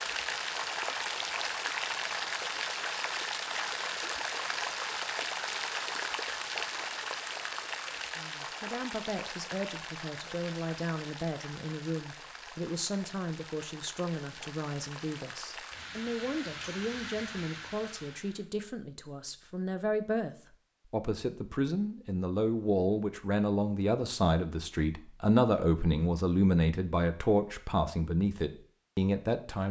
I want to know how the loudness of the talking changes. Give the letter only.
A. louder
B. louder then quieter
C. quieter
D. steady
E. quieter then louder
A.